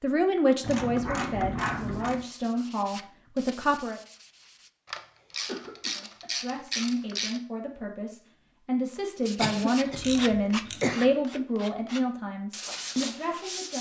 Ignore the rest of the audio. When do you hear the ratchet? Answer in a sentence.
The ratchet can be heard from 0.6 to 2.2 s, from 4.8 to 7.4 s and from 9.8 to 10.8 s.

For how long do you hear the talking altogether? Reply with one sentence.
The talking can be heard for 12 seconds in total.